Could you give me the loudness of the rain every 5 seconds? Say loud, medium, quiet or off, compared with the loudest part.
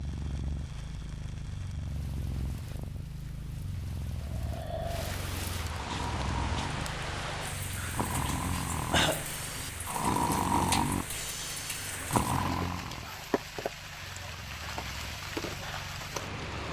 quiet, loud, loud, loud.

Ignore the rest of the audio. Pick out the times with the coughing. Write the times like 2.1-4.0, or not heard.
8.5-9.2.